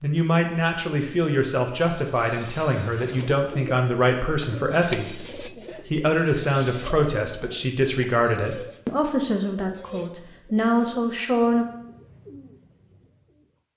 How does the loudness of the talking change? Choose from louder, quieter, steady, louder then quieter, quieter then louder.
steady.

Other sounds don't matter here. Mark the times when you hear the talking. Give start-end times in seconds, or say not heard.
0.0-11.7.